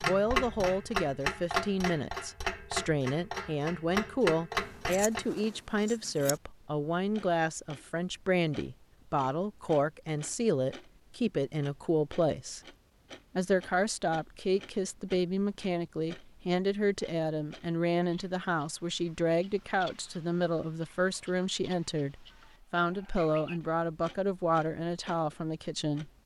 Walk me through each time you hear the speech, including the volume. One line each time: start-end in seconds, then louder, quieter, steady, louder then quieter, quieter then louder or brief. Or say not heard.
0.1-12.6 steady
13.3-26.1 steady.